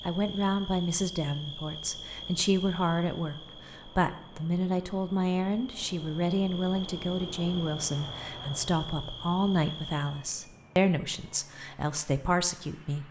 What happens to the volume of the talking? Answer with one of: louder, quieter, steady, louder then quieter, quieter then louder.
steady.